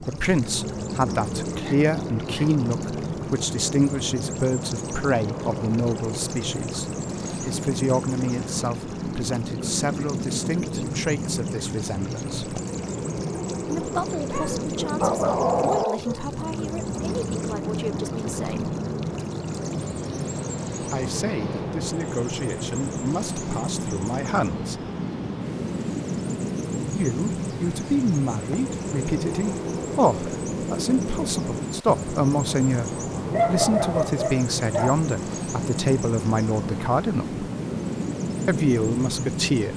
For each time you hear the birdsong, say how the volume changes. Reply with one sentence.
You can hear the birdsong from 0.0 to 39.7 s, at a steady volume.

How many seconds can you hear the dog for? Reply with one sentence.
The dog can be heard for 5 seconds in total.